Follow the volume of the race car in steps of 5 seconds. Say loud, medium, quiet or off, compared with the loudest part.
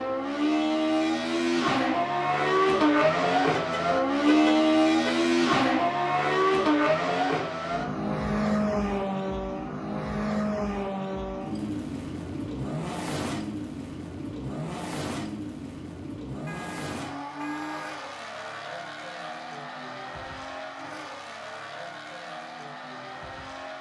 loud, loud, medium, quiet, quiet.